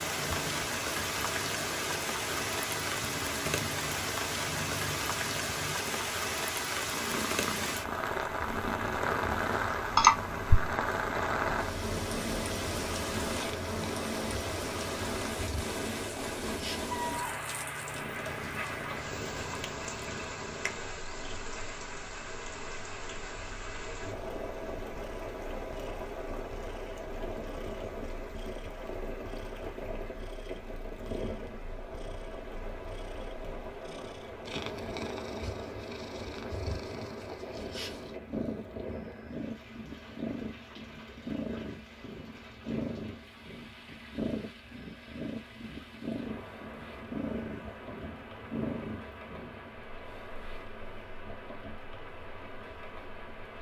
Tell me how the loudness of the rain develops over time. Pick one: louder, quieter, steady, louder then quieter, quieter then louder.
quieter.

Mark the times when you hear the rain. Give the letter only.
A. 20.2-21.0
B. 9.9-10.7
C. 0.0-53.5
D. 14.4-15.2
C.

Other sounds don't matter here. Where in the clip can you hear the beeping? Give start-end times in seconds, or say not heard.
9.9-10.7.